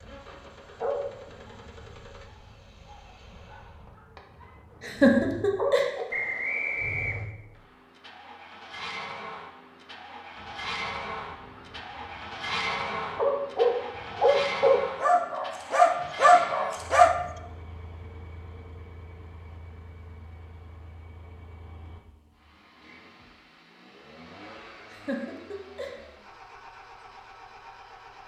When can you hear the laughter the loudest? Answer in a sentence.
The loudest moment of the laughter is at 5 seconds.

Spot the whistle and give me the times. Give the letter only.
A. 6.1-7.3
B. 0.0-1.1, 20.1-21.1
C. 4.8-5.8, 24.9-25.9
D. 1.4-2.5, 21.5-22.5
A.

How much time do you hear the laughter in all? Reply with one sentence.
You can hear the laughter for 2 seconds altogether.